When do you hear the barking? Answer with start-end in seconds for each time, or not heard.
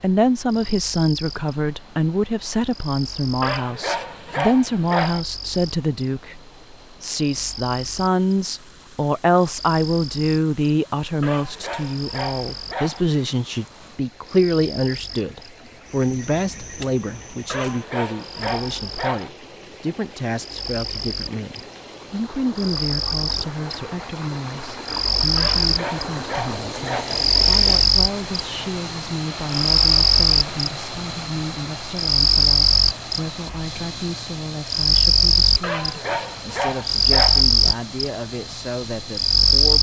3.4-5.2, 11.2-13.1, 17.4-19.3, 25.4-27.2, 35.6-37.5.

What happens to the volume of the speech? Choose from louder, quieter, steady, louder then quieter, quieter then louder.
quieter.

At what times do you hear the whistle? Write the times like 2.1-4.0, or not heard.
not heard.